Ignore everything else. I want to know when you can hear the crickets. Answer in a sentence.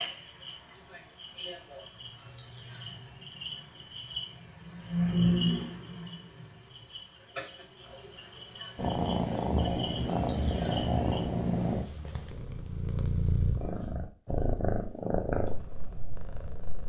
You can hear the crickets from 0.0 to 11.2 s.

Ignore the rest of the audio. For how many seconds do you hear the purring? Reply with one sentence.
The purring can be heard for 8 seconds in total.